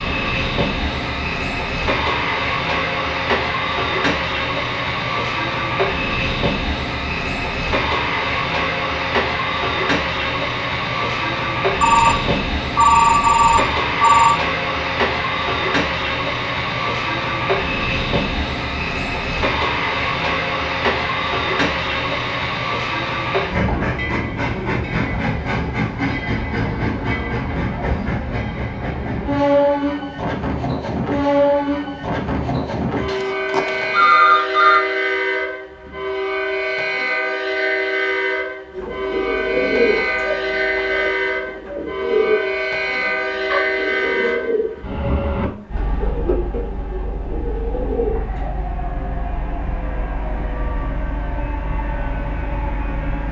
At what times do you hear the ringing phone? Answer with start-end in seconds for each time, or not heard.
11.8-14.3, 33.0-34.8.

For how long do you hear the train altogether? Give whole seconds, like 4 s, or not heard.
53 s.